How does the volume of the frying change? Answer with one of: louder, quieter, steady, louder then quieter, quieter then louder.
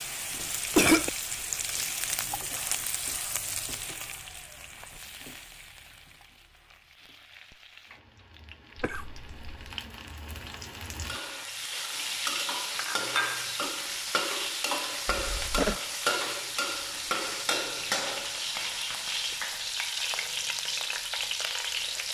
quieter then louder.